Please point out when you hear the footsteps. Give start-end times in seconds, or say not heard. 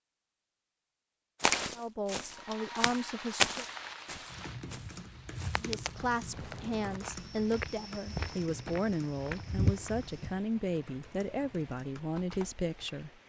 1.4-10.4.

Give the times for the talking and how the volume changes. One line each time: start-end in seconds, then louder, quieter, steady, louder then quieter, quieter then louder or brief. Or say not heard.
1.8-3.6 brief
5.6-13.1 steady.